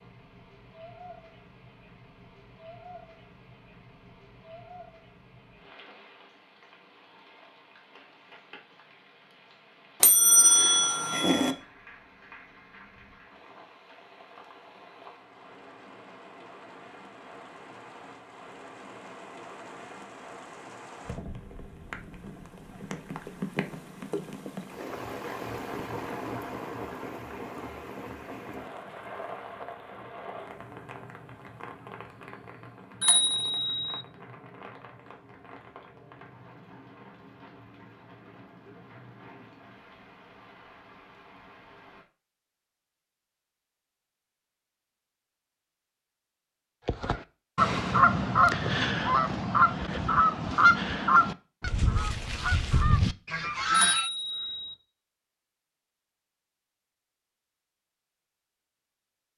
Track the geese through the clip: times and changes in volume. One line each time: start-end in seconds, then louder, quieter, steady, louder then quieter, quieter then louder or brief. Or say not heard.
46.9-54.1 quieter.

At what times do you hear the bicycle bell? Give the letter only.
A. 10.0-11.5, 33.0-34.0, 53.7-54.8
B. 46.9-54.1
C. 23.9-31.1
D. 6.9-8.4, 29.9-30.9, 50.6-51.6
A.